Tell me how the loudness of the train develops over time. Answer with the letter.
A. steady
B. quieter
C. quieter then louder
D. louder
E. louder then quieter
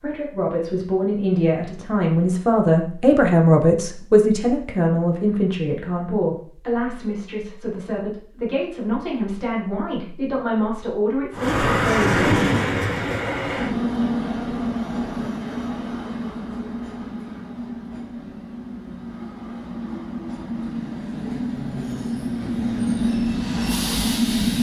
C.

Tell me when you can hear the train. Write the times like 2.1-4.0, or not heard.
11.3-24.5.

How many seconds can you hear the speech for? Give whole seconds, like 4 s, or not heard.
12 s.